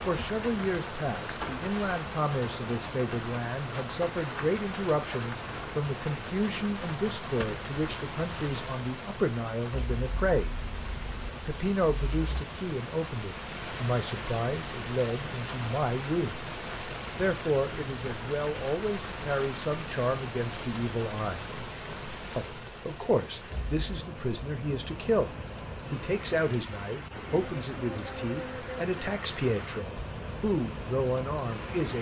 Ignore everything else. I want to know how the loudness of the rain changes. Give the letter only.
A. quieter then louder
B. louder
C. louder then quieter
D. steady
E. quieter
D.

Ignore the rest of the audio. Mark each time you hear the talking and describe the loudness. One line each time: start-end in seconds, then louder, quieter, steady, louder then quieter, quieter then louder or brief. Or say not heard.
0.1-10.6 steady
11.4-16.4 steady
17.1-21.4 steady
22.4-31.9 steady.